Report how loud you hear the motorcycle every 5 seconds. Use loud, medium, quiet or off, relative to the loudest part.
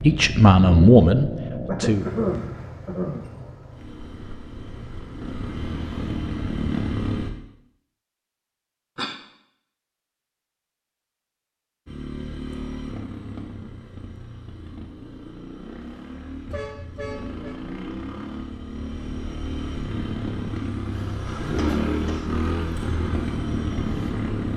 medium, loud, medium, medium, loud.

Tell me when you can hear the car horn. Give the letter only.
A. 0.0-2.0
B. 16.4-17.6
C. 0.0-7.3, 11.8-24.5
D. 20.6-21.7
B.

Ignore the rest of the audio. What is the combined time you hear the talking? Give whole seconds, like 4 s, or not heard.
2 s.